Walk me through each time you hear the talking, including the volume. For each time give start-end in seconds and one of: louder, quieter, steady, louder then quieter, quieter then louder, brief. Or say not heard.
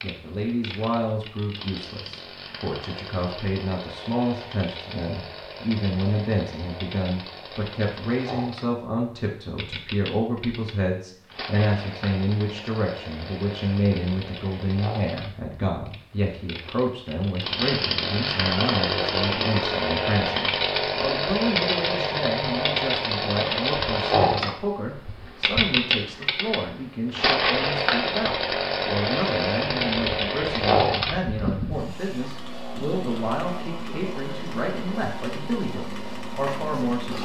0.0-37.1 steady.